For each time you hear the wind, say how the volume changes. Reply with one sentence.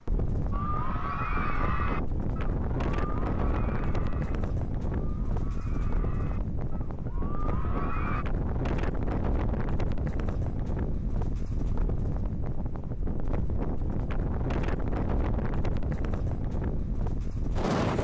You can hear the wind from 0.0 to 17.9 s, at a steady volume.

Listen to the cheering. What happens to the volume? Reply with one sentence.
The volume of the cheering goes down, then up.